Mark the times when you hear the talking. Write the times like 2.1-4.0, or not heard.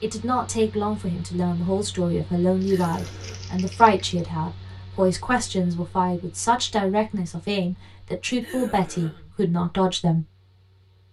0.0-10.2.